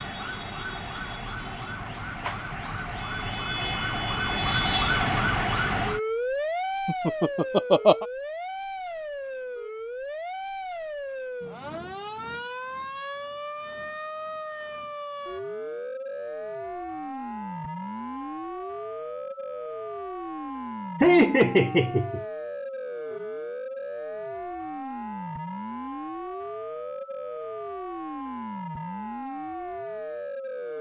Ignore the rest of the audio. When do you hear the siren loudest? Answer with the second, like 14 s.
5 s.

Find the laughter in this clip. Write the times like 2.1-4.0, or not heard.
6.8-8.1, 21.0-22.2.